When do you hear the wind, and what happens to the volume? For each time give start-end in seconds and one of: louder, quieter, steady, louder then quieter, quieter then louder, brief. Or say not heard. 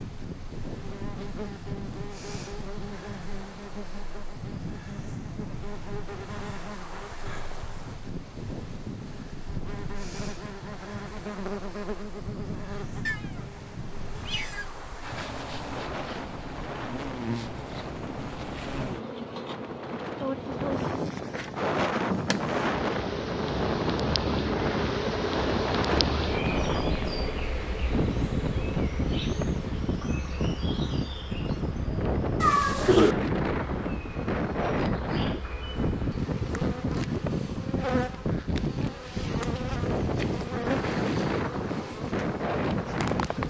0.0-43.4 louder.